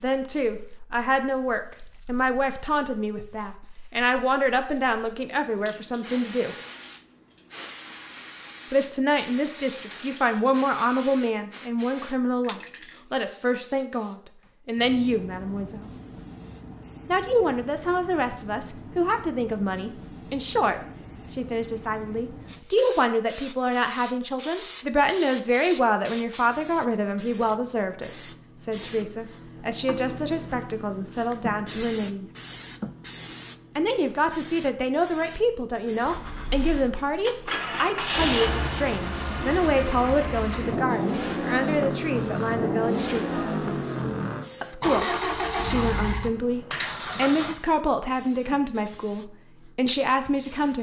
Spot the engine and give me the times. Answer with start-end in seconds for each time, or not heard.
36.0-47.5.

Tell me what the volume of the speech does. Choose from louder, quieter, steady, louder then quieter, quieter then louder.
steady.